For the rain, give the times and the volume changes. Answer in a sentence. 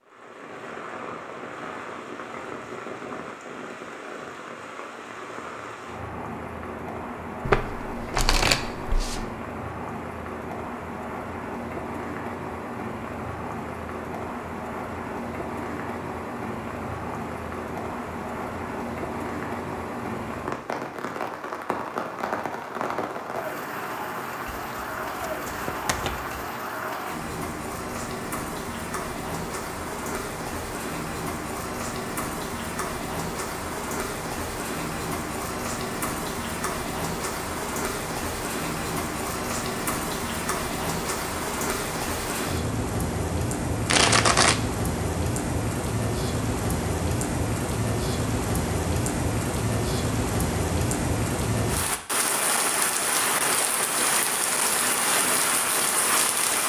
You can hear the rain from 0.0 to 56.6 s, getting louder.